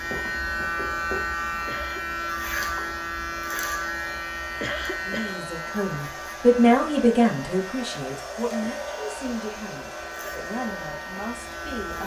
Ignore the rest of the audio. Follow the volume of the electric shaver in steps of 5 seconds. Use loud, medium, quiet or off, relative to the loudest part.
loud, medium, medium.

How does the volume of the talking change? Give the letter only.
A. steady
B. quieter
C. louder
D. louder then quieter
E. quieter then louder
B.